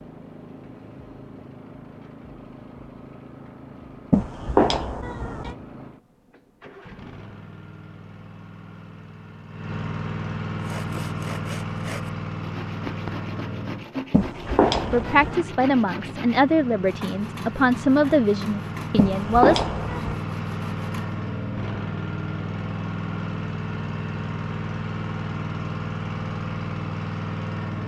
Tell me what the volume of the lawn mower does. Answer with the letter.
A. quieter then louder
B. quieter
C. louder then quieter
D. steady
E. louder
E.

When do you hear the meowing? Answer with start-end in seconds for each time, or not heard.
4.1-5.5, 14.1-15.3, 18.9-20.2.